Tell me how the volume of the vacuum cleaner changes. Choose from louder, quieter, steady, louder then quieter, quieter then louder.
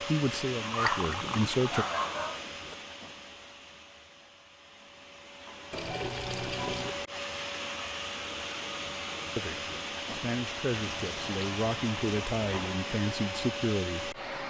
quieter then louder.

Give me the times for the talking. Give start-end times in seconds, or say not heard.
0.1-1.9, 9.3-14.2.